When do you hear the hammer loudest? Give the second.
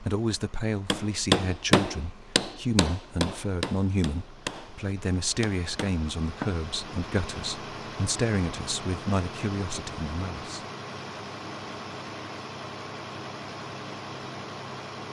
1 s.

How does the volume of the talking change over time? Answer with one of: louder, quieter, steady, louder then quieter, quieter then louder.
steady.